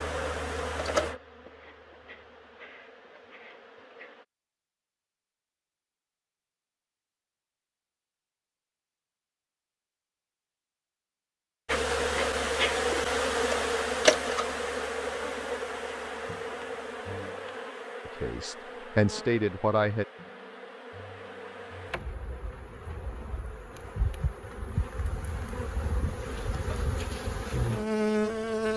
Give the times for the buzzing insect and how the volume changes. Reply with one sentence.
You can hear the buzzing insect from 0.0 to 4.2 s, getting quieter; and from 11.7 to 28.7 s, getting quieter then louder.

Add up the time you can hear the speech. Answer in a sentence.
You can hear the speech for 2 seconds altogether.